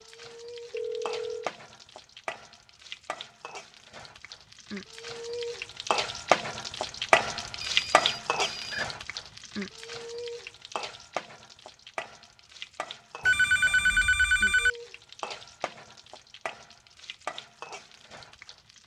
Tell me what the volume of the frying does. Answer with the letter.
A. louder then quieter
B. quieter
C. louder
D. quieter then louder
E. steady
A.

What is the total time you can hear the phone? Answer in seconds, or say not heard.
4 s.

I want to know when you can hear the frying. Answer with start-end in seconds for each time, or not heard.
0.0-18.8.